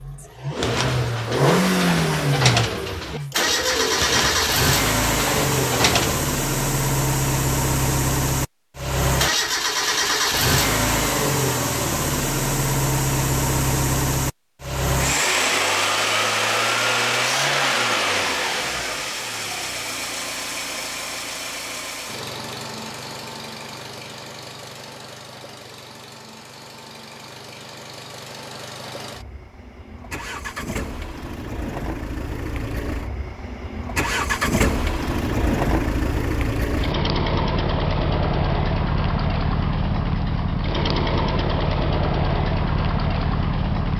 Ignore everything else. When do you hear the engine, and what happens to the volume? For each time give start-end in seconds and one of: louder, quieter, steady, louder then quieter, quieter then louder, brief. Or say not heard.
0.0-43.9 quieter then louder.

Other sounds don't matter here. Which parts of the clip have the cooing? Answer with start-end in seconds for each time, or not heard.
0.6-6.2.